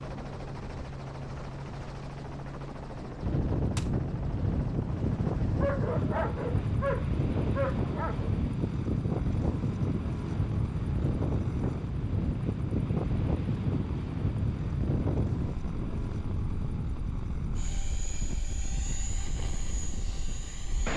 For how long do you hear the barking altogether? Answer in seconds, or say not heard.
3 s.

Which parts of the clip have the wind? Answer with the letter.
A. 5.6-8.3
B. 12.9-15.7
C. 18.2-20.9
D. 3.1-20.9
D.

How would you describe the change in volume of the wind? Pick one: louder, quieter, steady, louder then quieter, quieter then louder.
quieter.